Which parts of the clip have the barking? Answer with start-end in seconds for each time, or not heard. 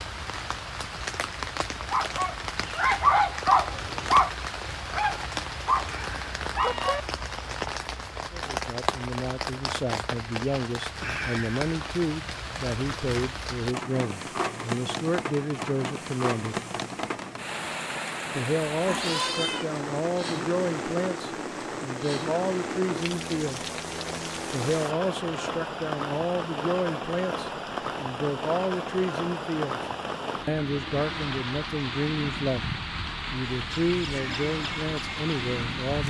1.8-7.0.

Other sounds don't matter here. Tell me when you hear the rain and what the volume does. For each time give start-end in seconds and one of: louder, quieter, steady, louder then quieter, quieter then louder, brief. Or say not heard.
0.0-36.0 steady.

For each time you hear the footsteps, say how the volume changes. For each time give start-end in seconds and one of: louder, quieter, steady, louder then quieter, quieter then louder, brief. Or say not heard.
not heard.